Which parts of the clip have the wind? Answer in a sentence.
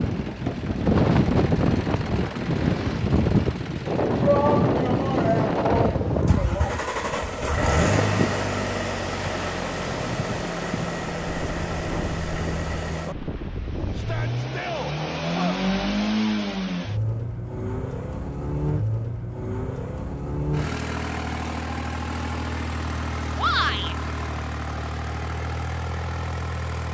You can hear the wind from 0.0 to 14.4 s.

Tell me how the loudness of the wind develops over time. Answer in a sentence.
The volume of the wind goes down.